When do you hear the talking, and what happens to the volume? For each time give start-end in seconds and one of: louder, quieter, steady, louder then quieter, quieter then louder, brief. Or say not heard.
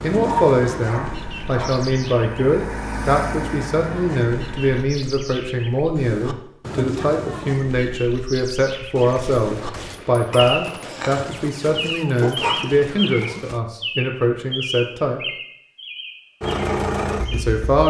0.0-15.2 steady
17.3-17.8 brief.